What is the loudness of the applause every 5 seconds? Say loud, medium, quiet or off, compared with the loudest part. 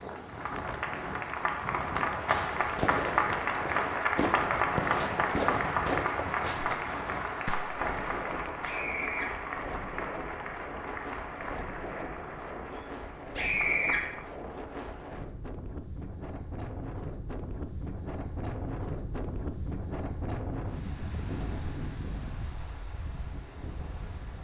loud, loud, medium, off, off.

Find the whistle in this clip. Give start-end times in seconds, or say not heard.
not heard.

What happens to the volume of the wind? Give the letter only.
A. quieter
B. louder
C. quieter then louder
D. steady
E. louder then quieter
D.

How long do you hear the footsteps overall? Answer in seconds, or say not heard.
not heard.